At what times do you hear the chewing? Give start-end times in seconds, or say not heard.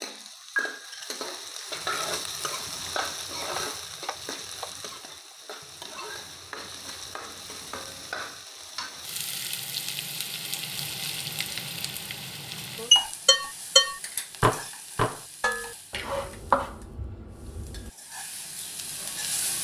not heard.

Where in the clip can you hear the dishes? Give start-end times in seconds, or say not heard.
12.9-15.8.